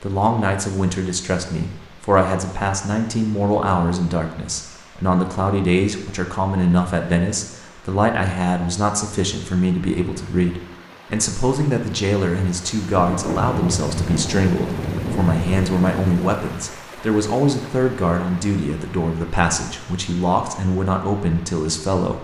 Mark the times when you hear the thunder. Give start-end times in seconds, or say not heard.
12.9-16.4.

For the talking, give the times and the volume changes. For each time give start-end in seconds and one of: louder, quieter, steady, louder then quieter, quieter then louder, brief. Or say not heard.
0.0-22.1 steady.